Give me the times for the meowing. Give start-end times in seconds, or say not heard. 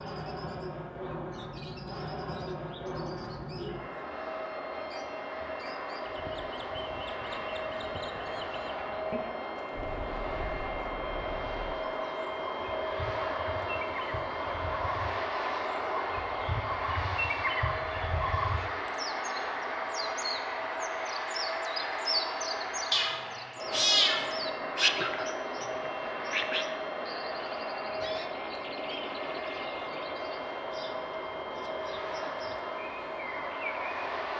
22.9-24.9.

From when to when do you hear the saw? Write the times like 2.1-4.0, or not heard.
not heard.